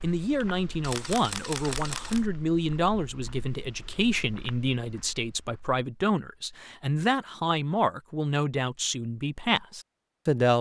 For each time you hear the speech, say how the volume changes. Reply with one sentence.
You can hear the speech from 0.0 to 10.5 s, at a steady volume.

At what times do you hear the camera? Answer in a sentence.
You can hear the camera from 0.8 to 2.3 s.